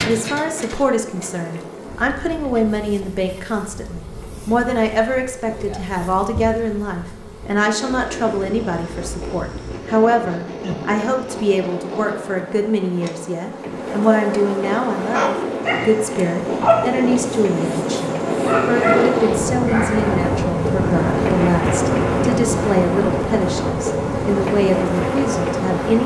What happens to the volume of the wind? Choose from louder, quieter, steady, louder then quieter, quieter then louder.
louder.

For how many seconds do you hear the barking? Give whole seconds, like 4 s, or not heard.
5 s.